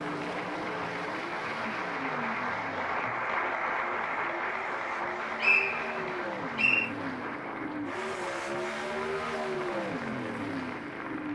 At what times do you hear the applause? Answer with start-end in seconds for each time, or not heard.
0.0-11.3.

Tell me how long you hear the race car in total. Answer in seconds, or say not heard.
11 s.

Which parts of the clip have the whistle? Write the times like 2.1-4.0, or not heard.
5.4-6.9.